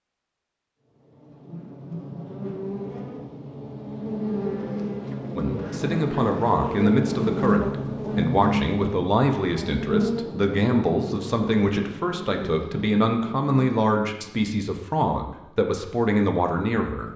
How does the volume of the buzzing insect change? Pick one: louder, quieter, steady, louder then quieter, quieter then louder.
louder then quieter.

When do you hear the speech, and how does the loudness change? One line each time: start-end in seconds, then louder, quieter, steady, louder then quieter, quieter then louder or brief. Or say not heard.
5.3-17.1 steady.